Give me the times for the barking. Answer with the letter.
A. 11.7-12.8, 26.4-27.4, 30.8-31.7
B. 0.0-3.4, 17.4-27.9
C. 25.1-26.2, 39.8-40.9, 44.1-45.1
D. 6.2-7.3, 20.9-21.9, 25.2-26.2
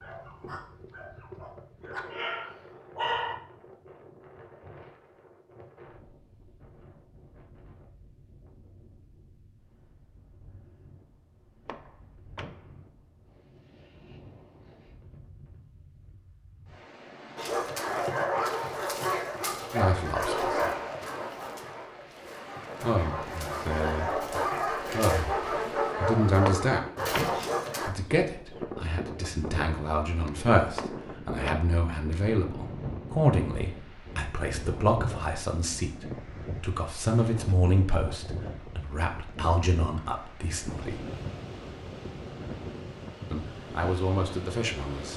B.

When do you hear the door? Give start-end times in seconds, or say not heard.
11.7-12.8, 26.4-27.4, 30.8-31.7.